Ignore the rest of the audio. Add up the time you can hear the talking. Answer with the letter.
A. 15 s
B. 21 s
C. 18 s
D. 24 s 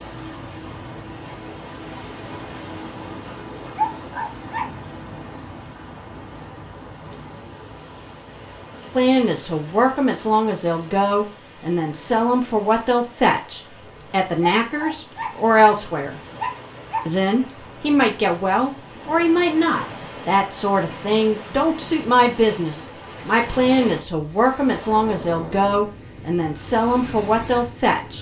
C.